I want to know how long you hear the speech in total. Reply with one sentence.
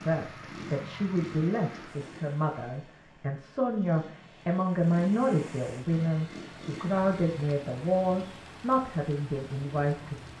The speech can be heard for 10 seconds in total.